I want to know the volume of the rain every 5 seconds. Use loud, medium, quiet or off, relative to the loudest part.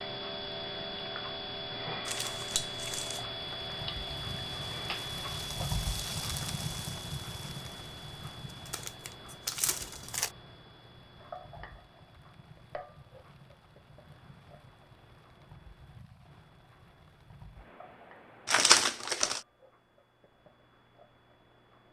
medium, loud, quiet, quiet, off.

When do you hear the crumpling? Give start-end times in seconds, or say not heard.
2.0-3.2, 8.7-10.3, 18.4-19.4.